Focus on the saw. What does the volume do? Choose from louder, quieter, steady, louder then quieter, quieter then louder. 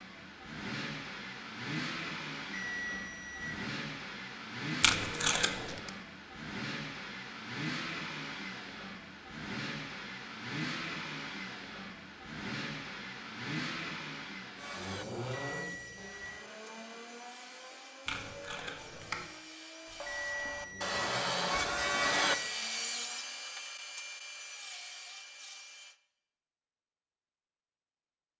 louder then quieter.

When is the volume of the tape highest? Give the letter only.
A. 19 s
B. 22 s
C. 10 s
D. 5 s
D.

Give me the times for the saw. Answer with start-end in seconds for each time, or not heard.
14.6-25.9.